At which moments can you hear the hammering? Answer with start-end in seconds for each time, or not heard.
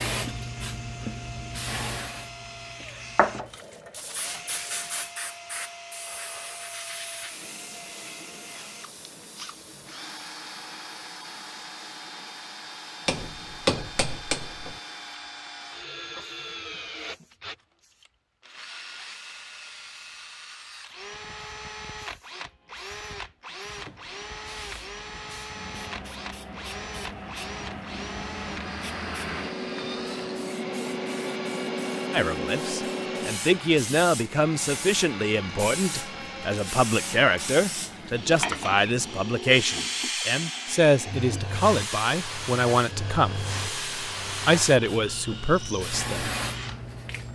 13.1-14.8.